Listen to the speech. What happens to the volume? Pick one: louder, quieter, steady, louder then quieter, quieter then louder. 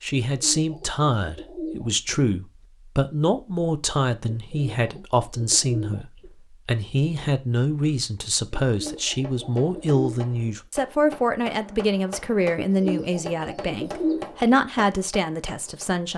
steady.